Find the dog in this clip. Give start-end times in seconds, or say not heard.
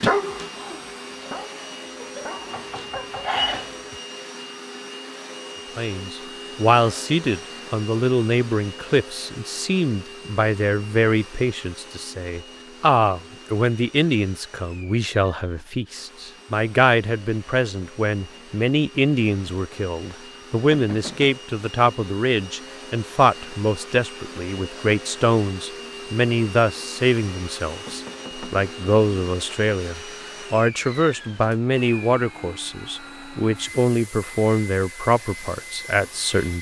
0.0-4.0.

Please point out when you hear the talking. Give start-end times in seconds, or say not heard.
5.8-36.5.